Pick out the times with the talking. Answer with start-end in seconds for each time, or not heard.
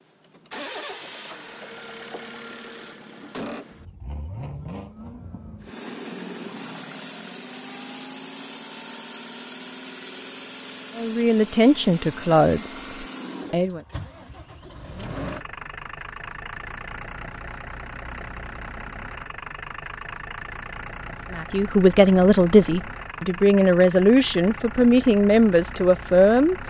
10.9-13.8, 21.3-26.6.